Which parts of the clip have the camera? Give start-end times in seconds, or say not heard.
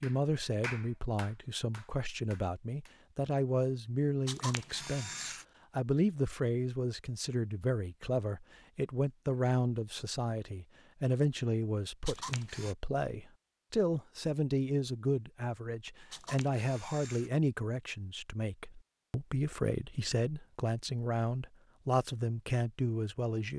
4.2-5.5, 12.1-12.8, 16.1-17.3.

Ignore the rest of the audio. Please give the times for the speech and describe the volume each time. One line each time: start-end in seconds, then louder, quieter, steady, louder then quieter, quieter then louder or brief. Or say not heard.
0.0-23.5 steady.